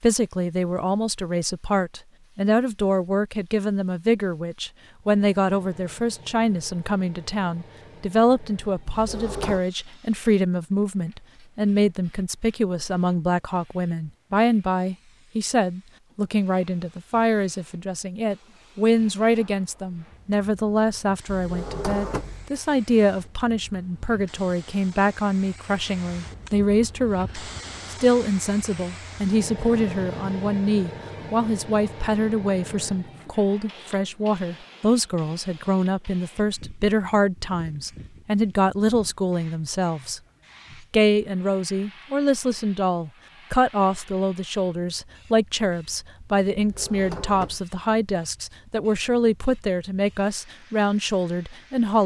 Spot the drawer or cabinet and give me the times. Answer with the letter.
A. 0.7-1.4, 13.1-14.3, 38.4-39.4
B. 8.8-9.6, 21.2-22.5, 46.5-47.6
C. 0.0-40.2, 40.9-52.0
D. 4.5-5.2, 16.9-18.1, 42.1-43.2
B.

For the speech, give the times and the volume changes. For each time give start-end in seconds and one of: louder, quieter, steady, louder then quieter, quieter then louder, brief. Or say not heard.
0.0-40.2 steady
40.9-52.0 steady.